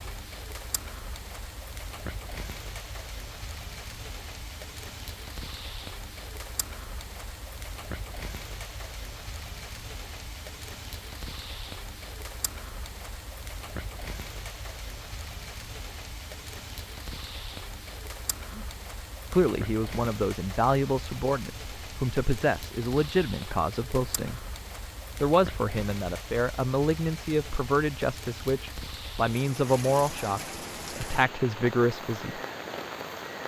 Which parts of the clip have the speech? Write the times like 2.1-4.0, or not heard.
19.3-24.4, 25.2-32.4.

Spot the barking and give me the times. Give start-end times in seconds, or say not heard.
not heard.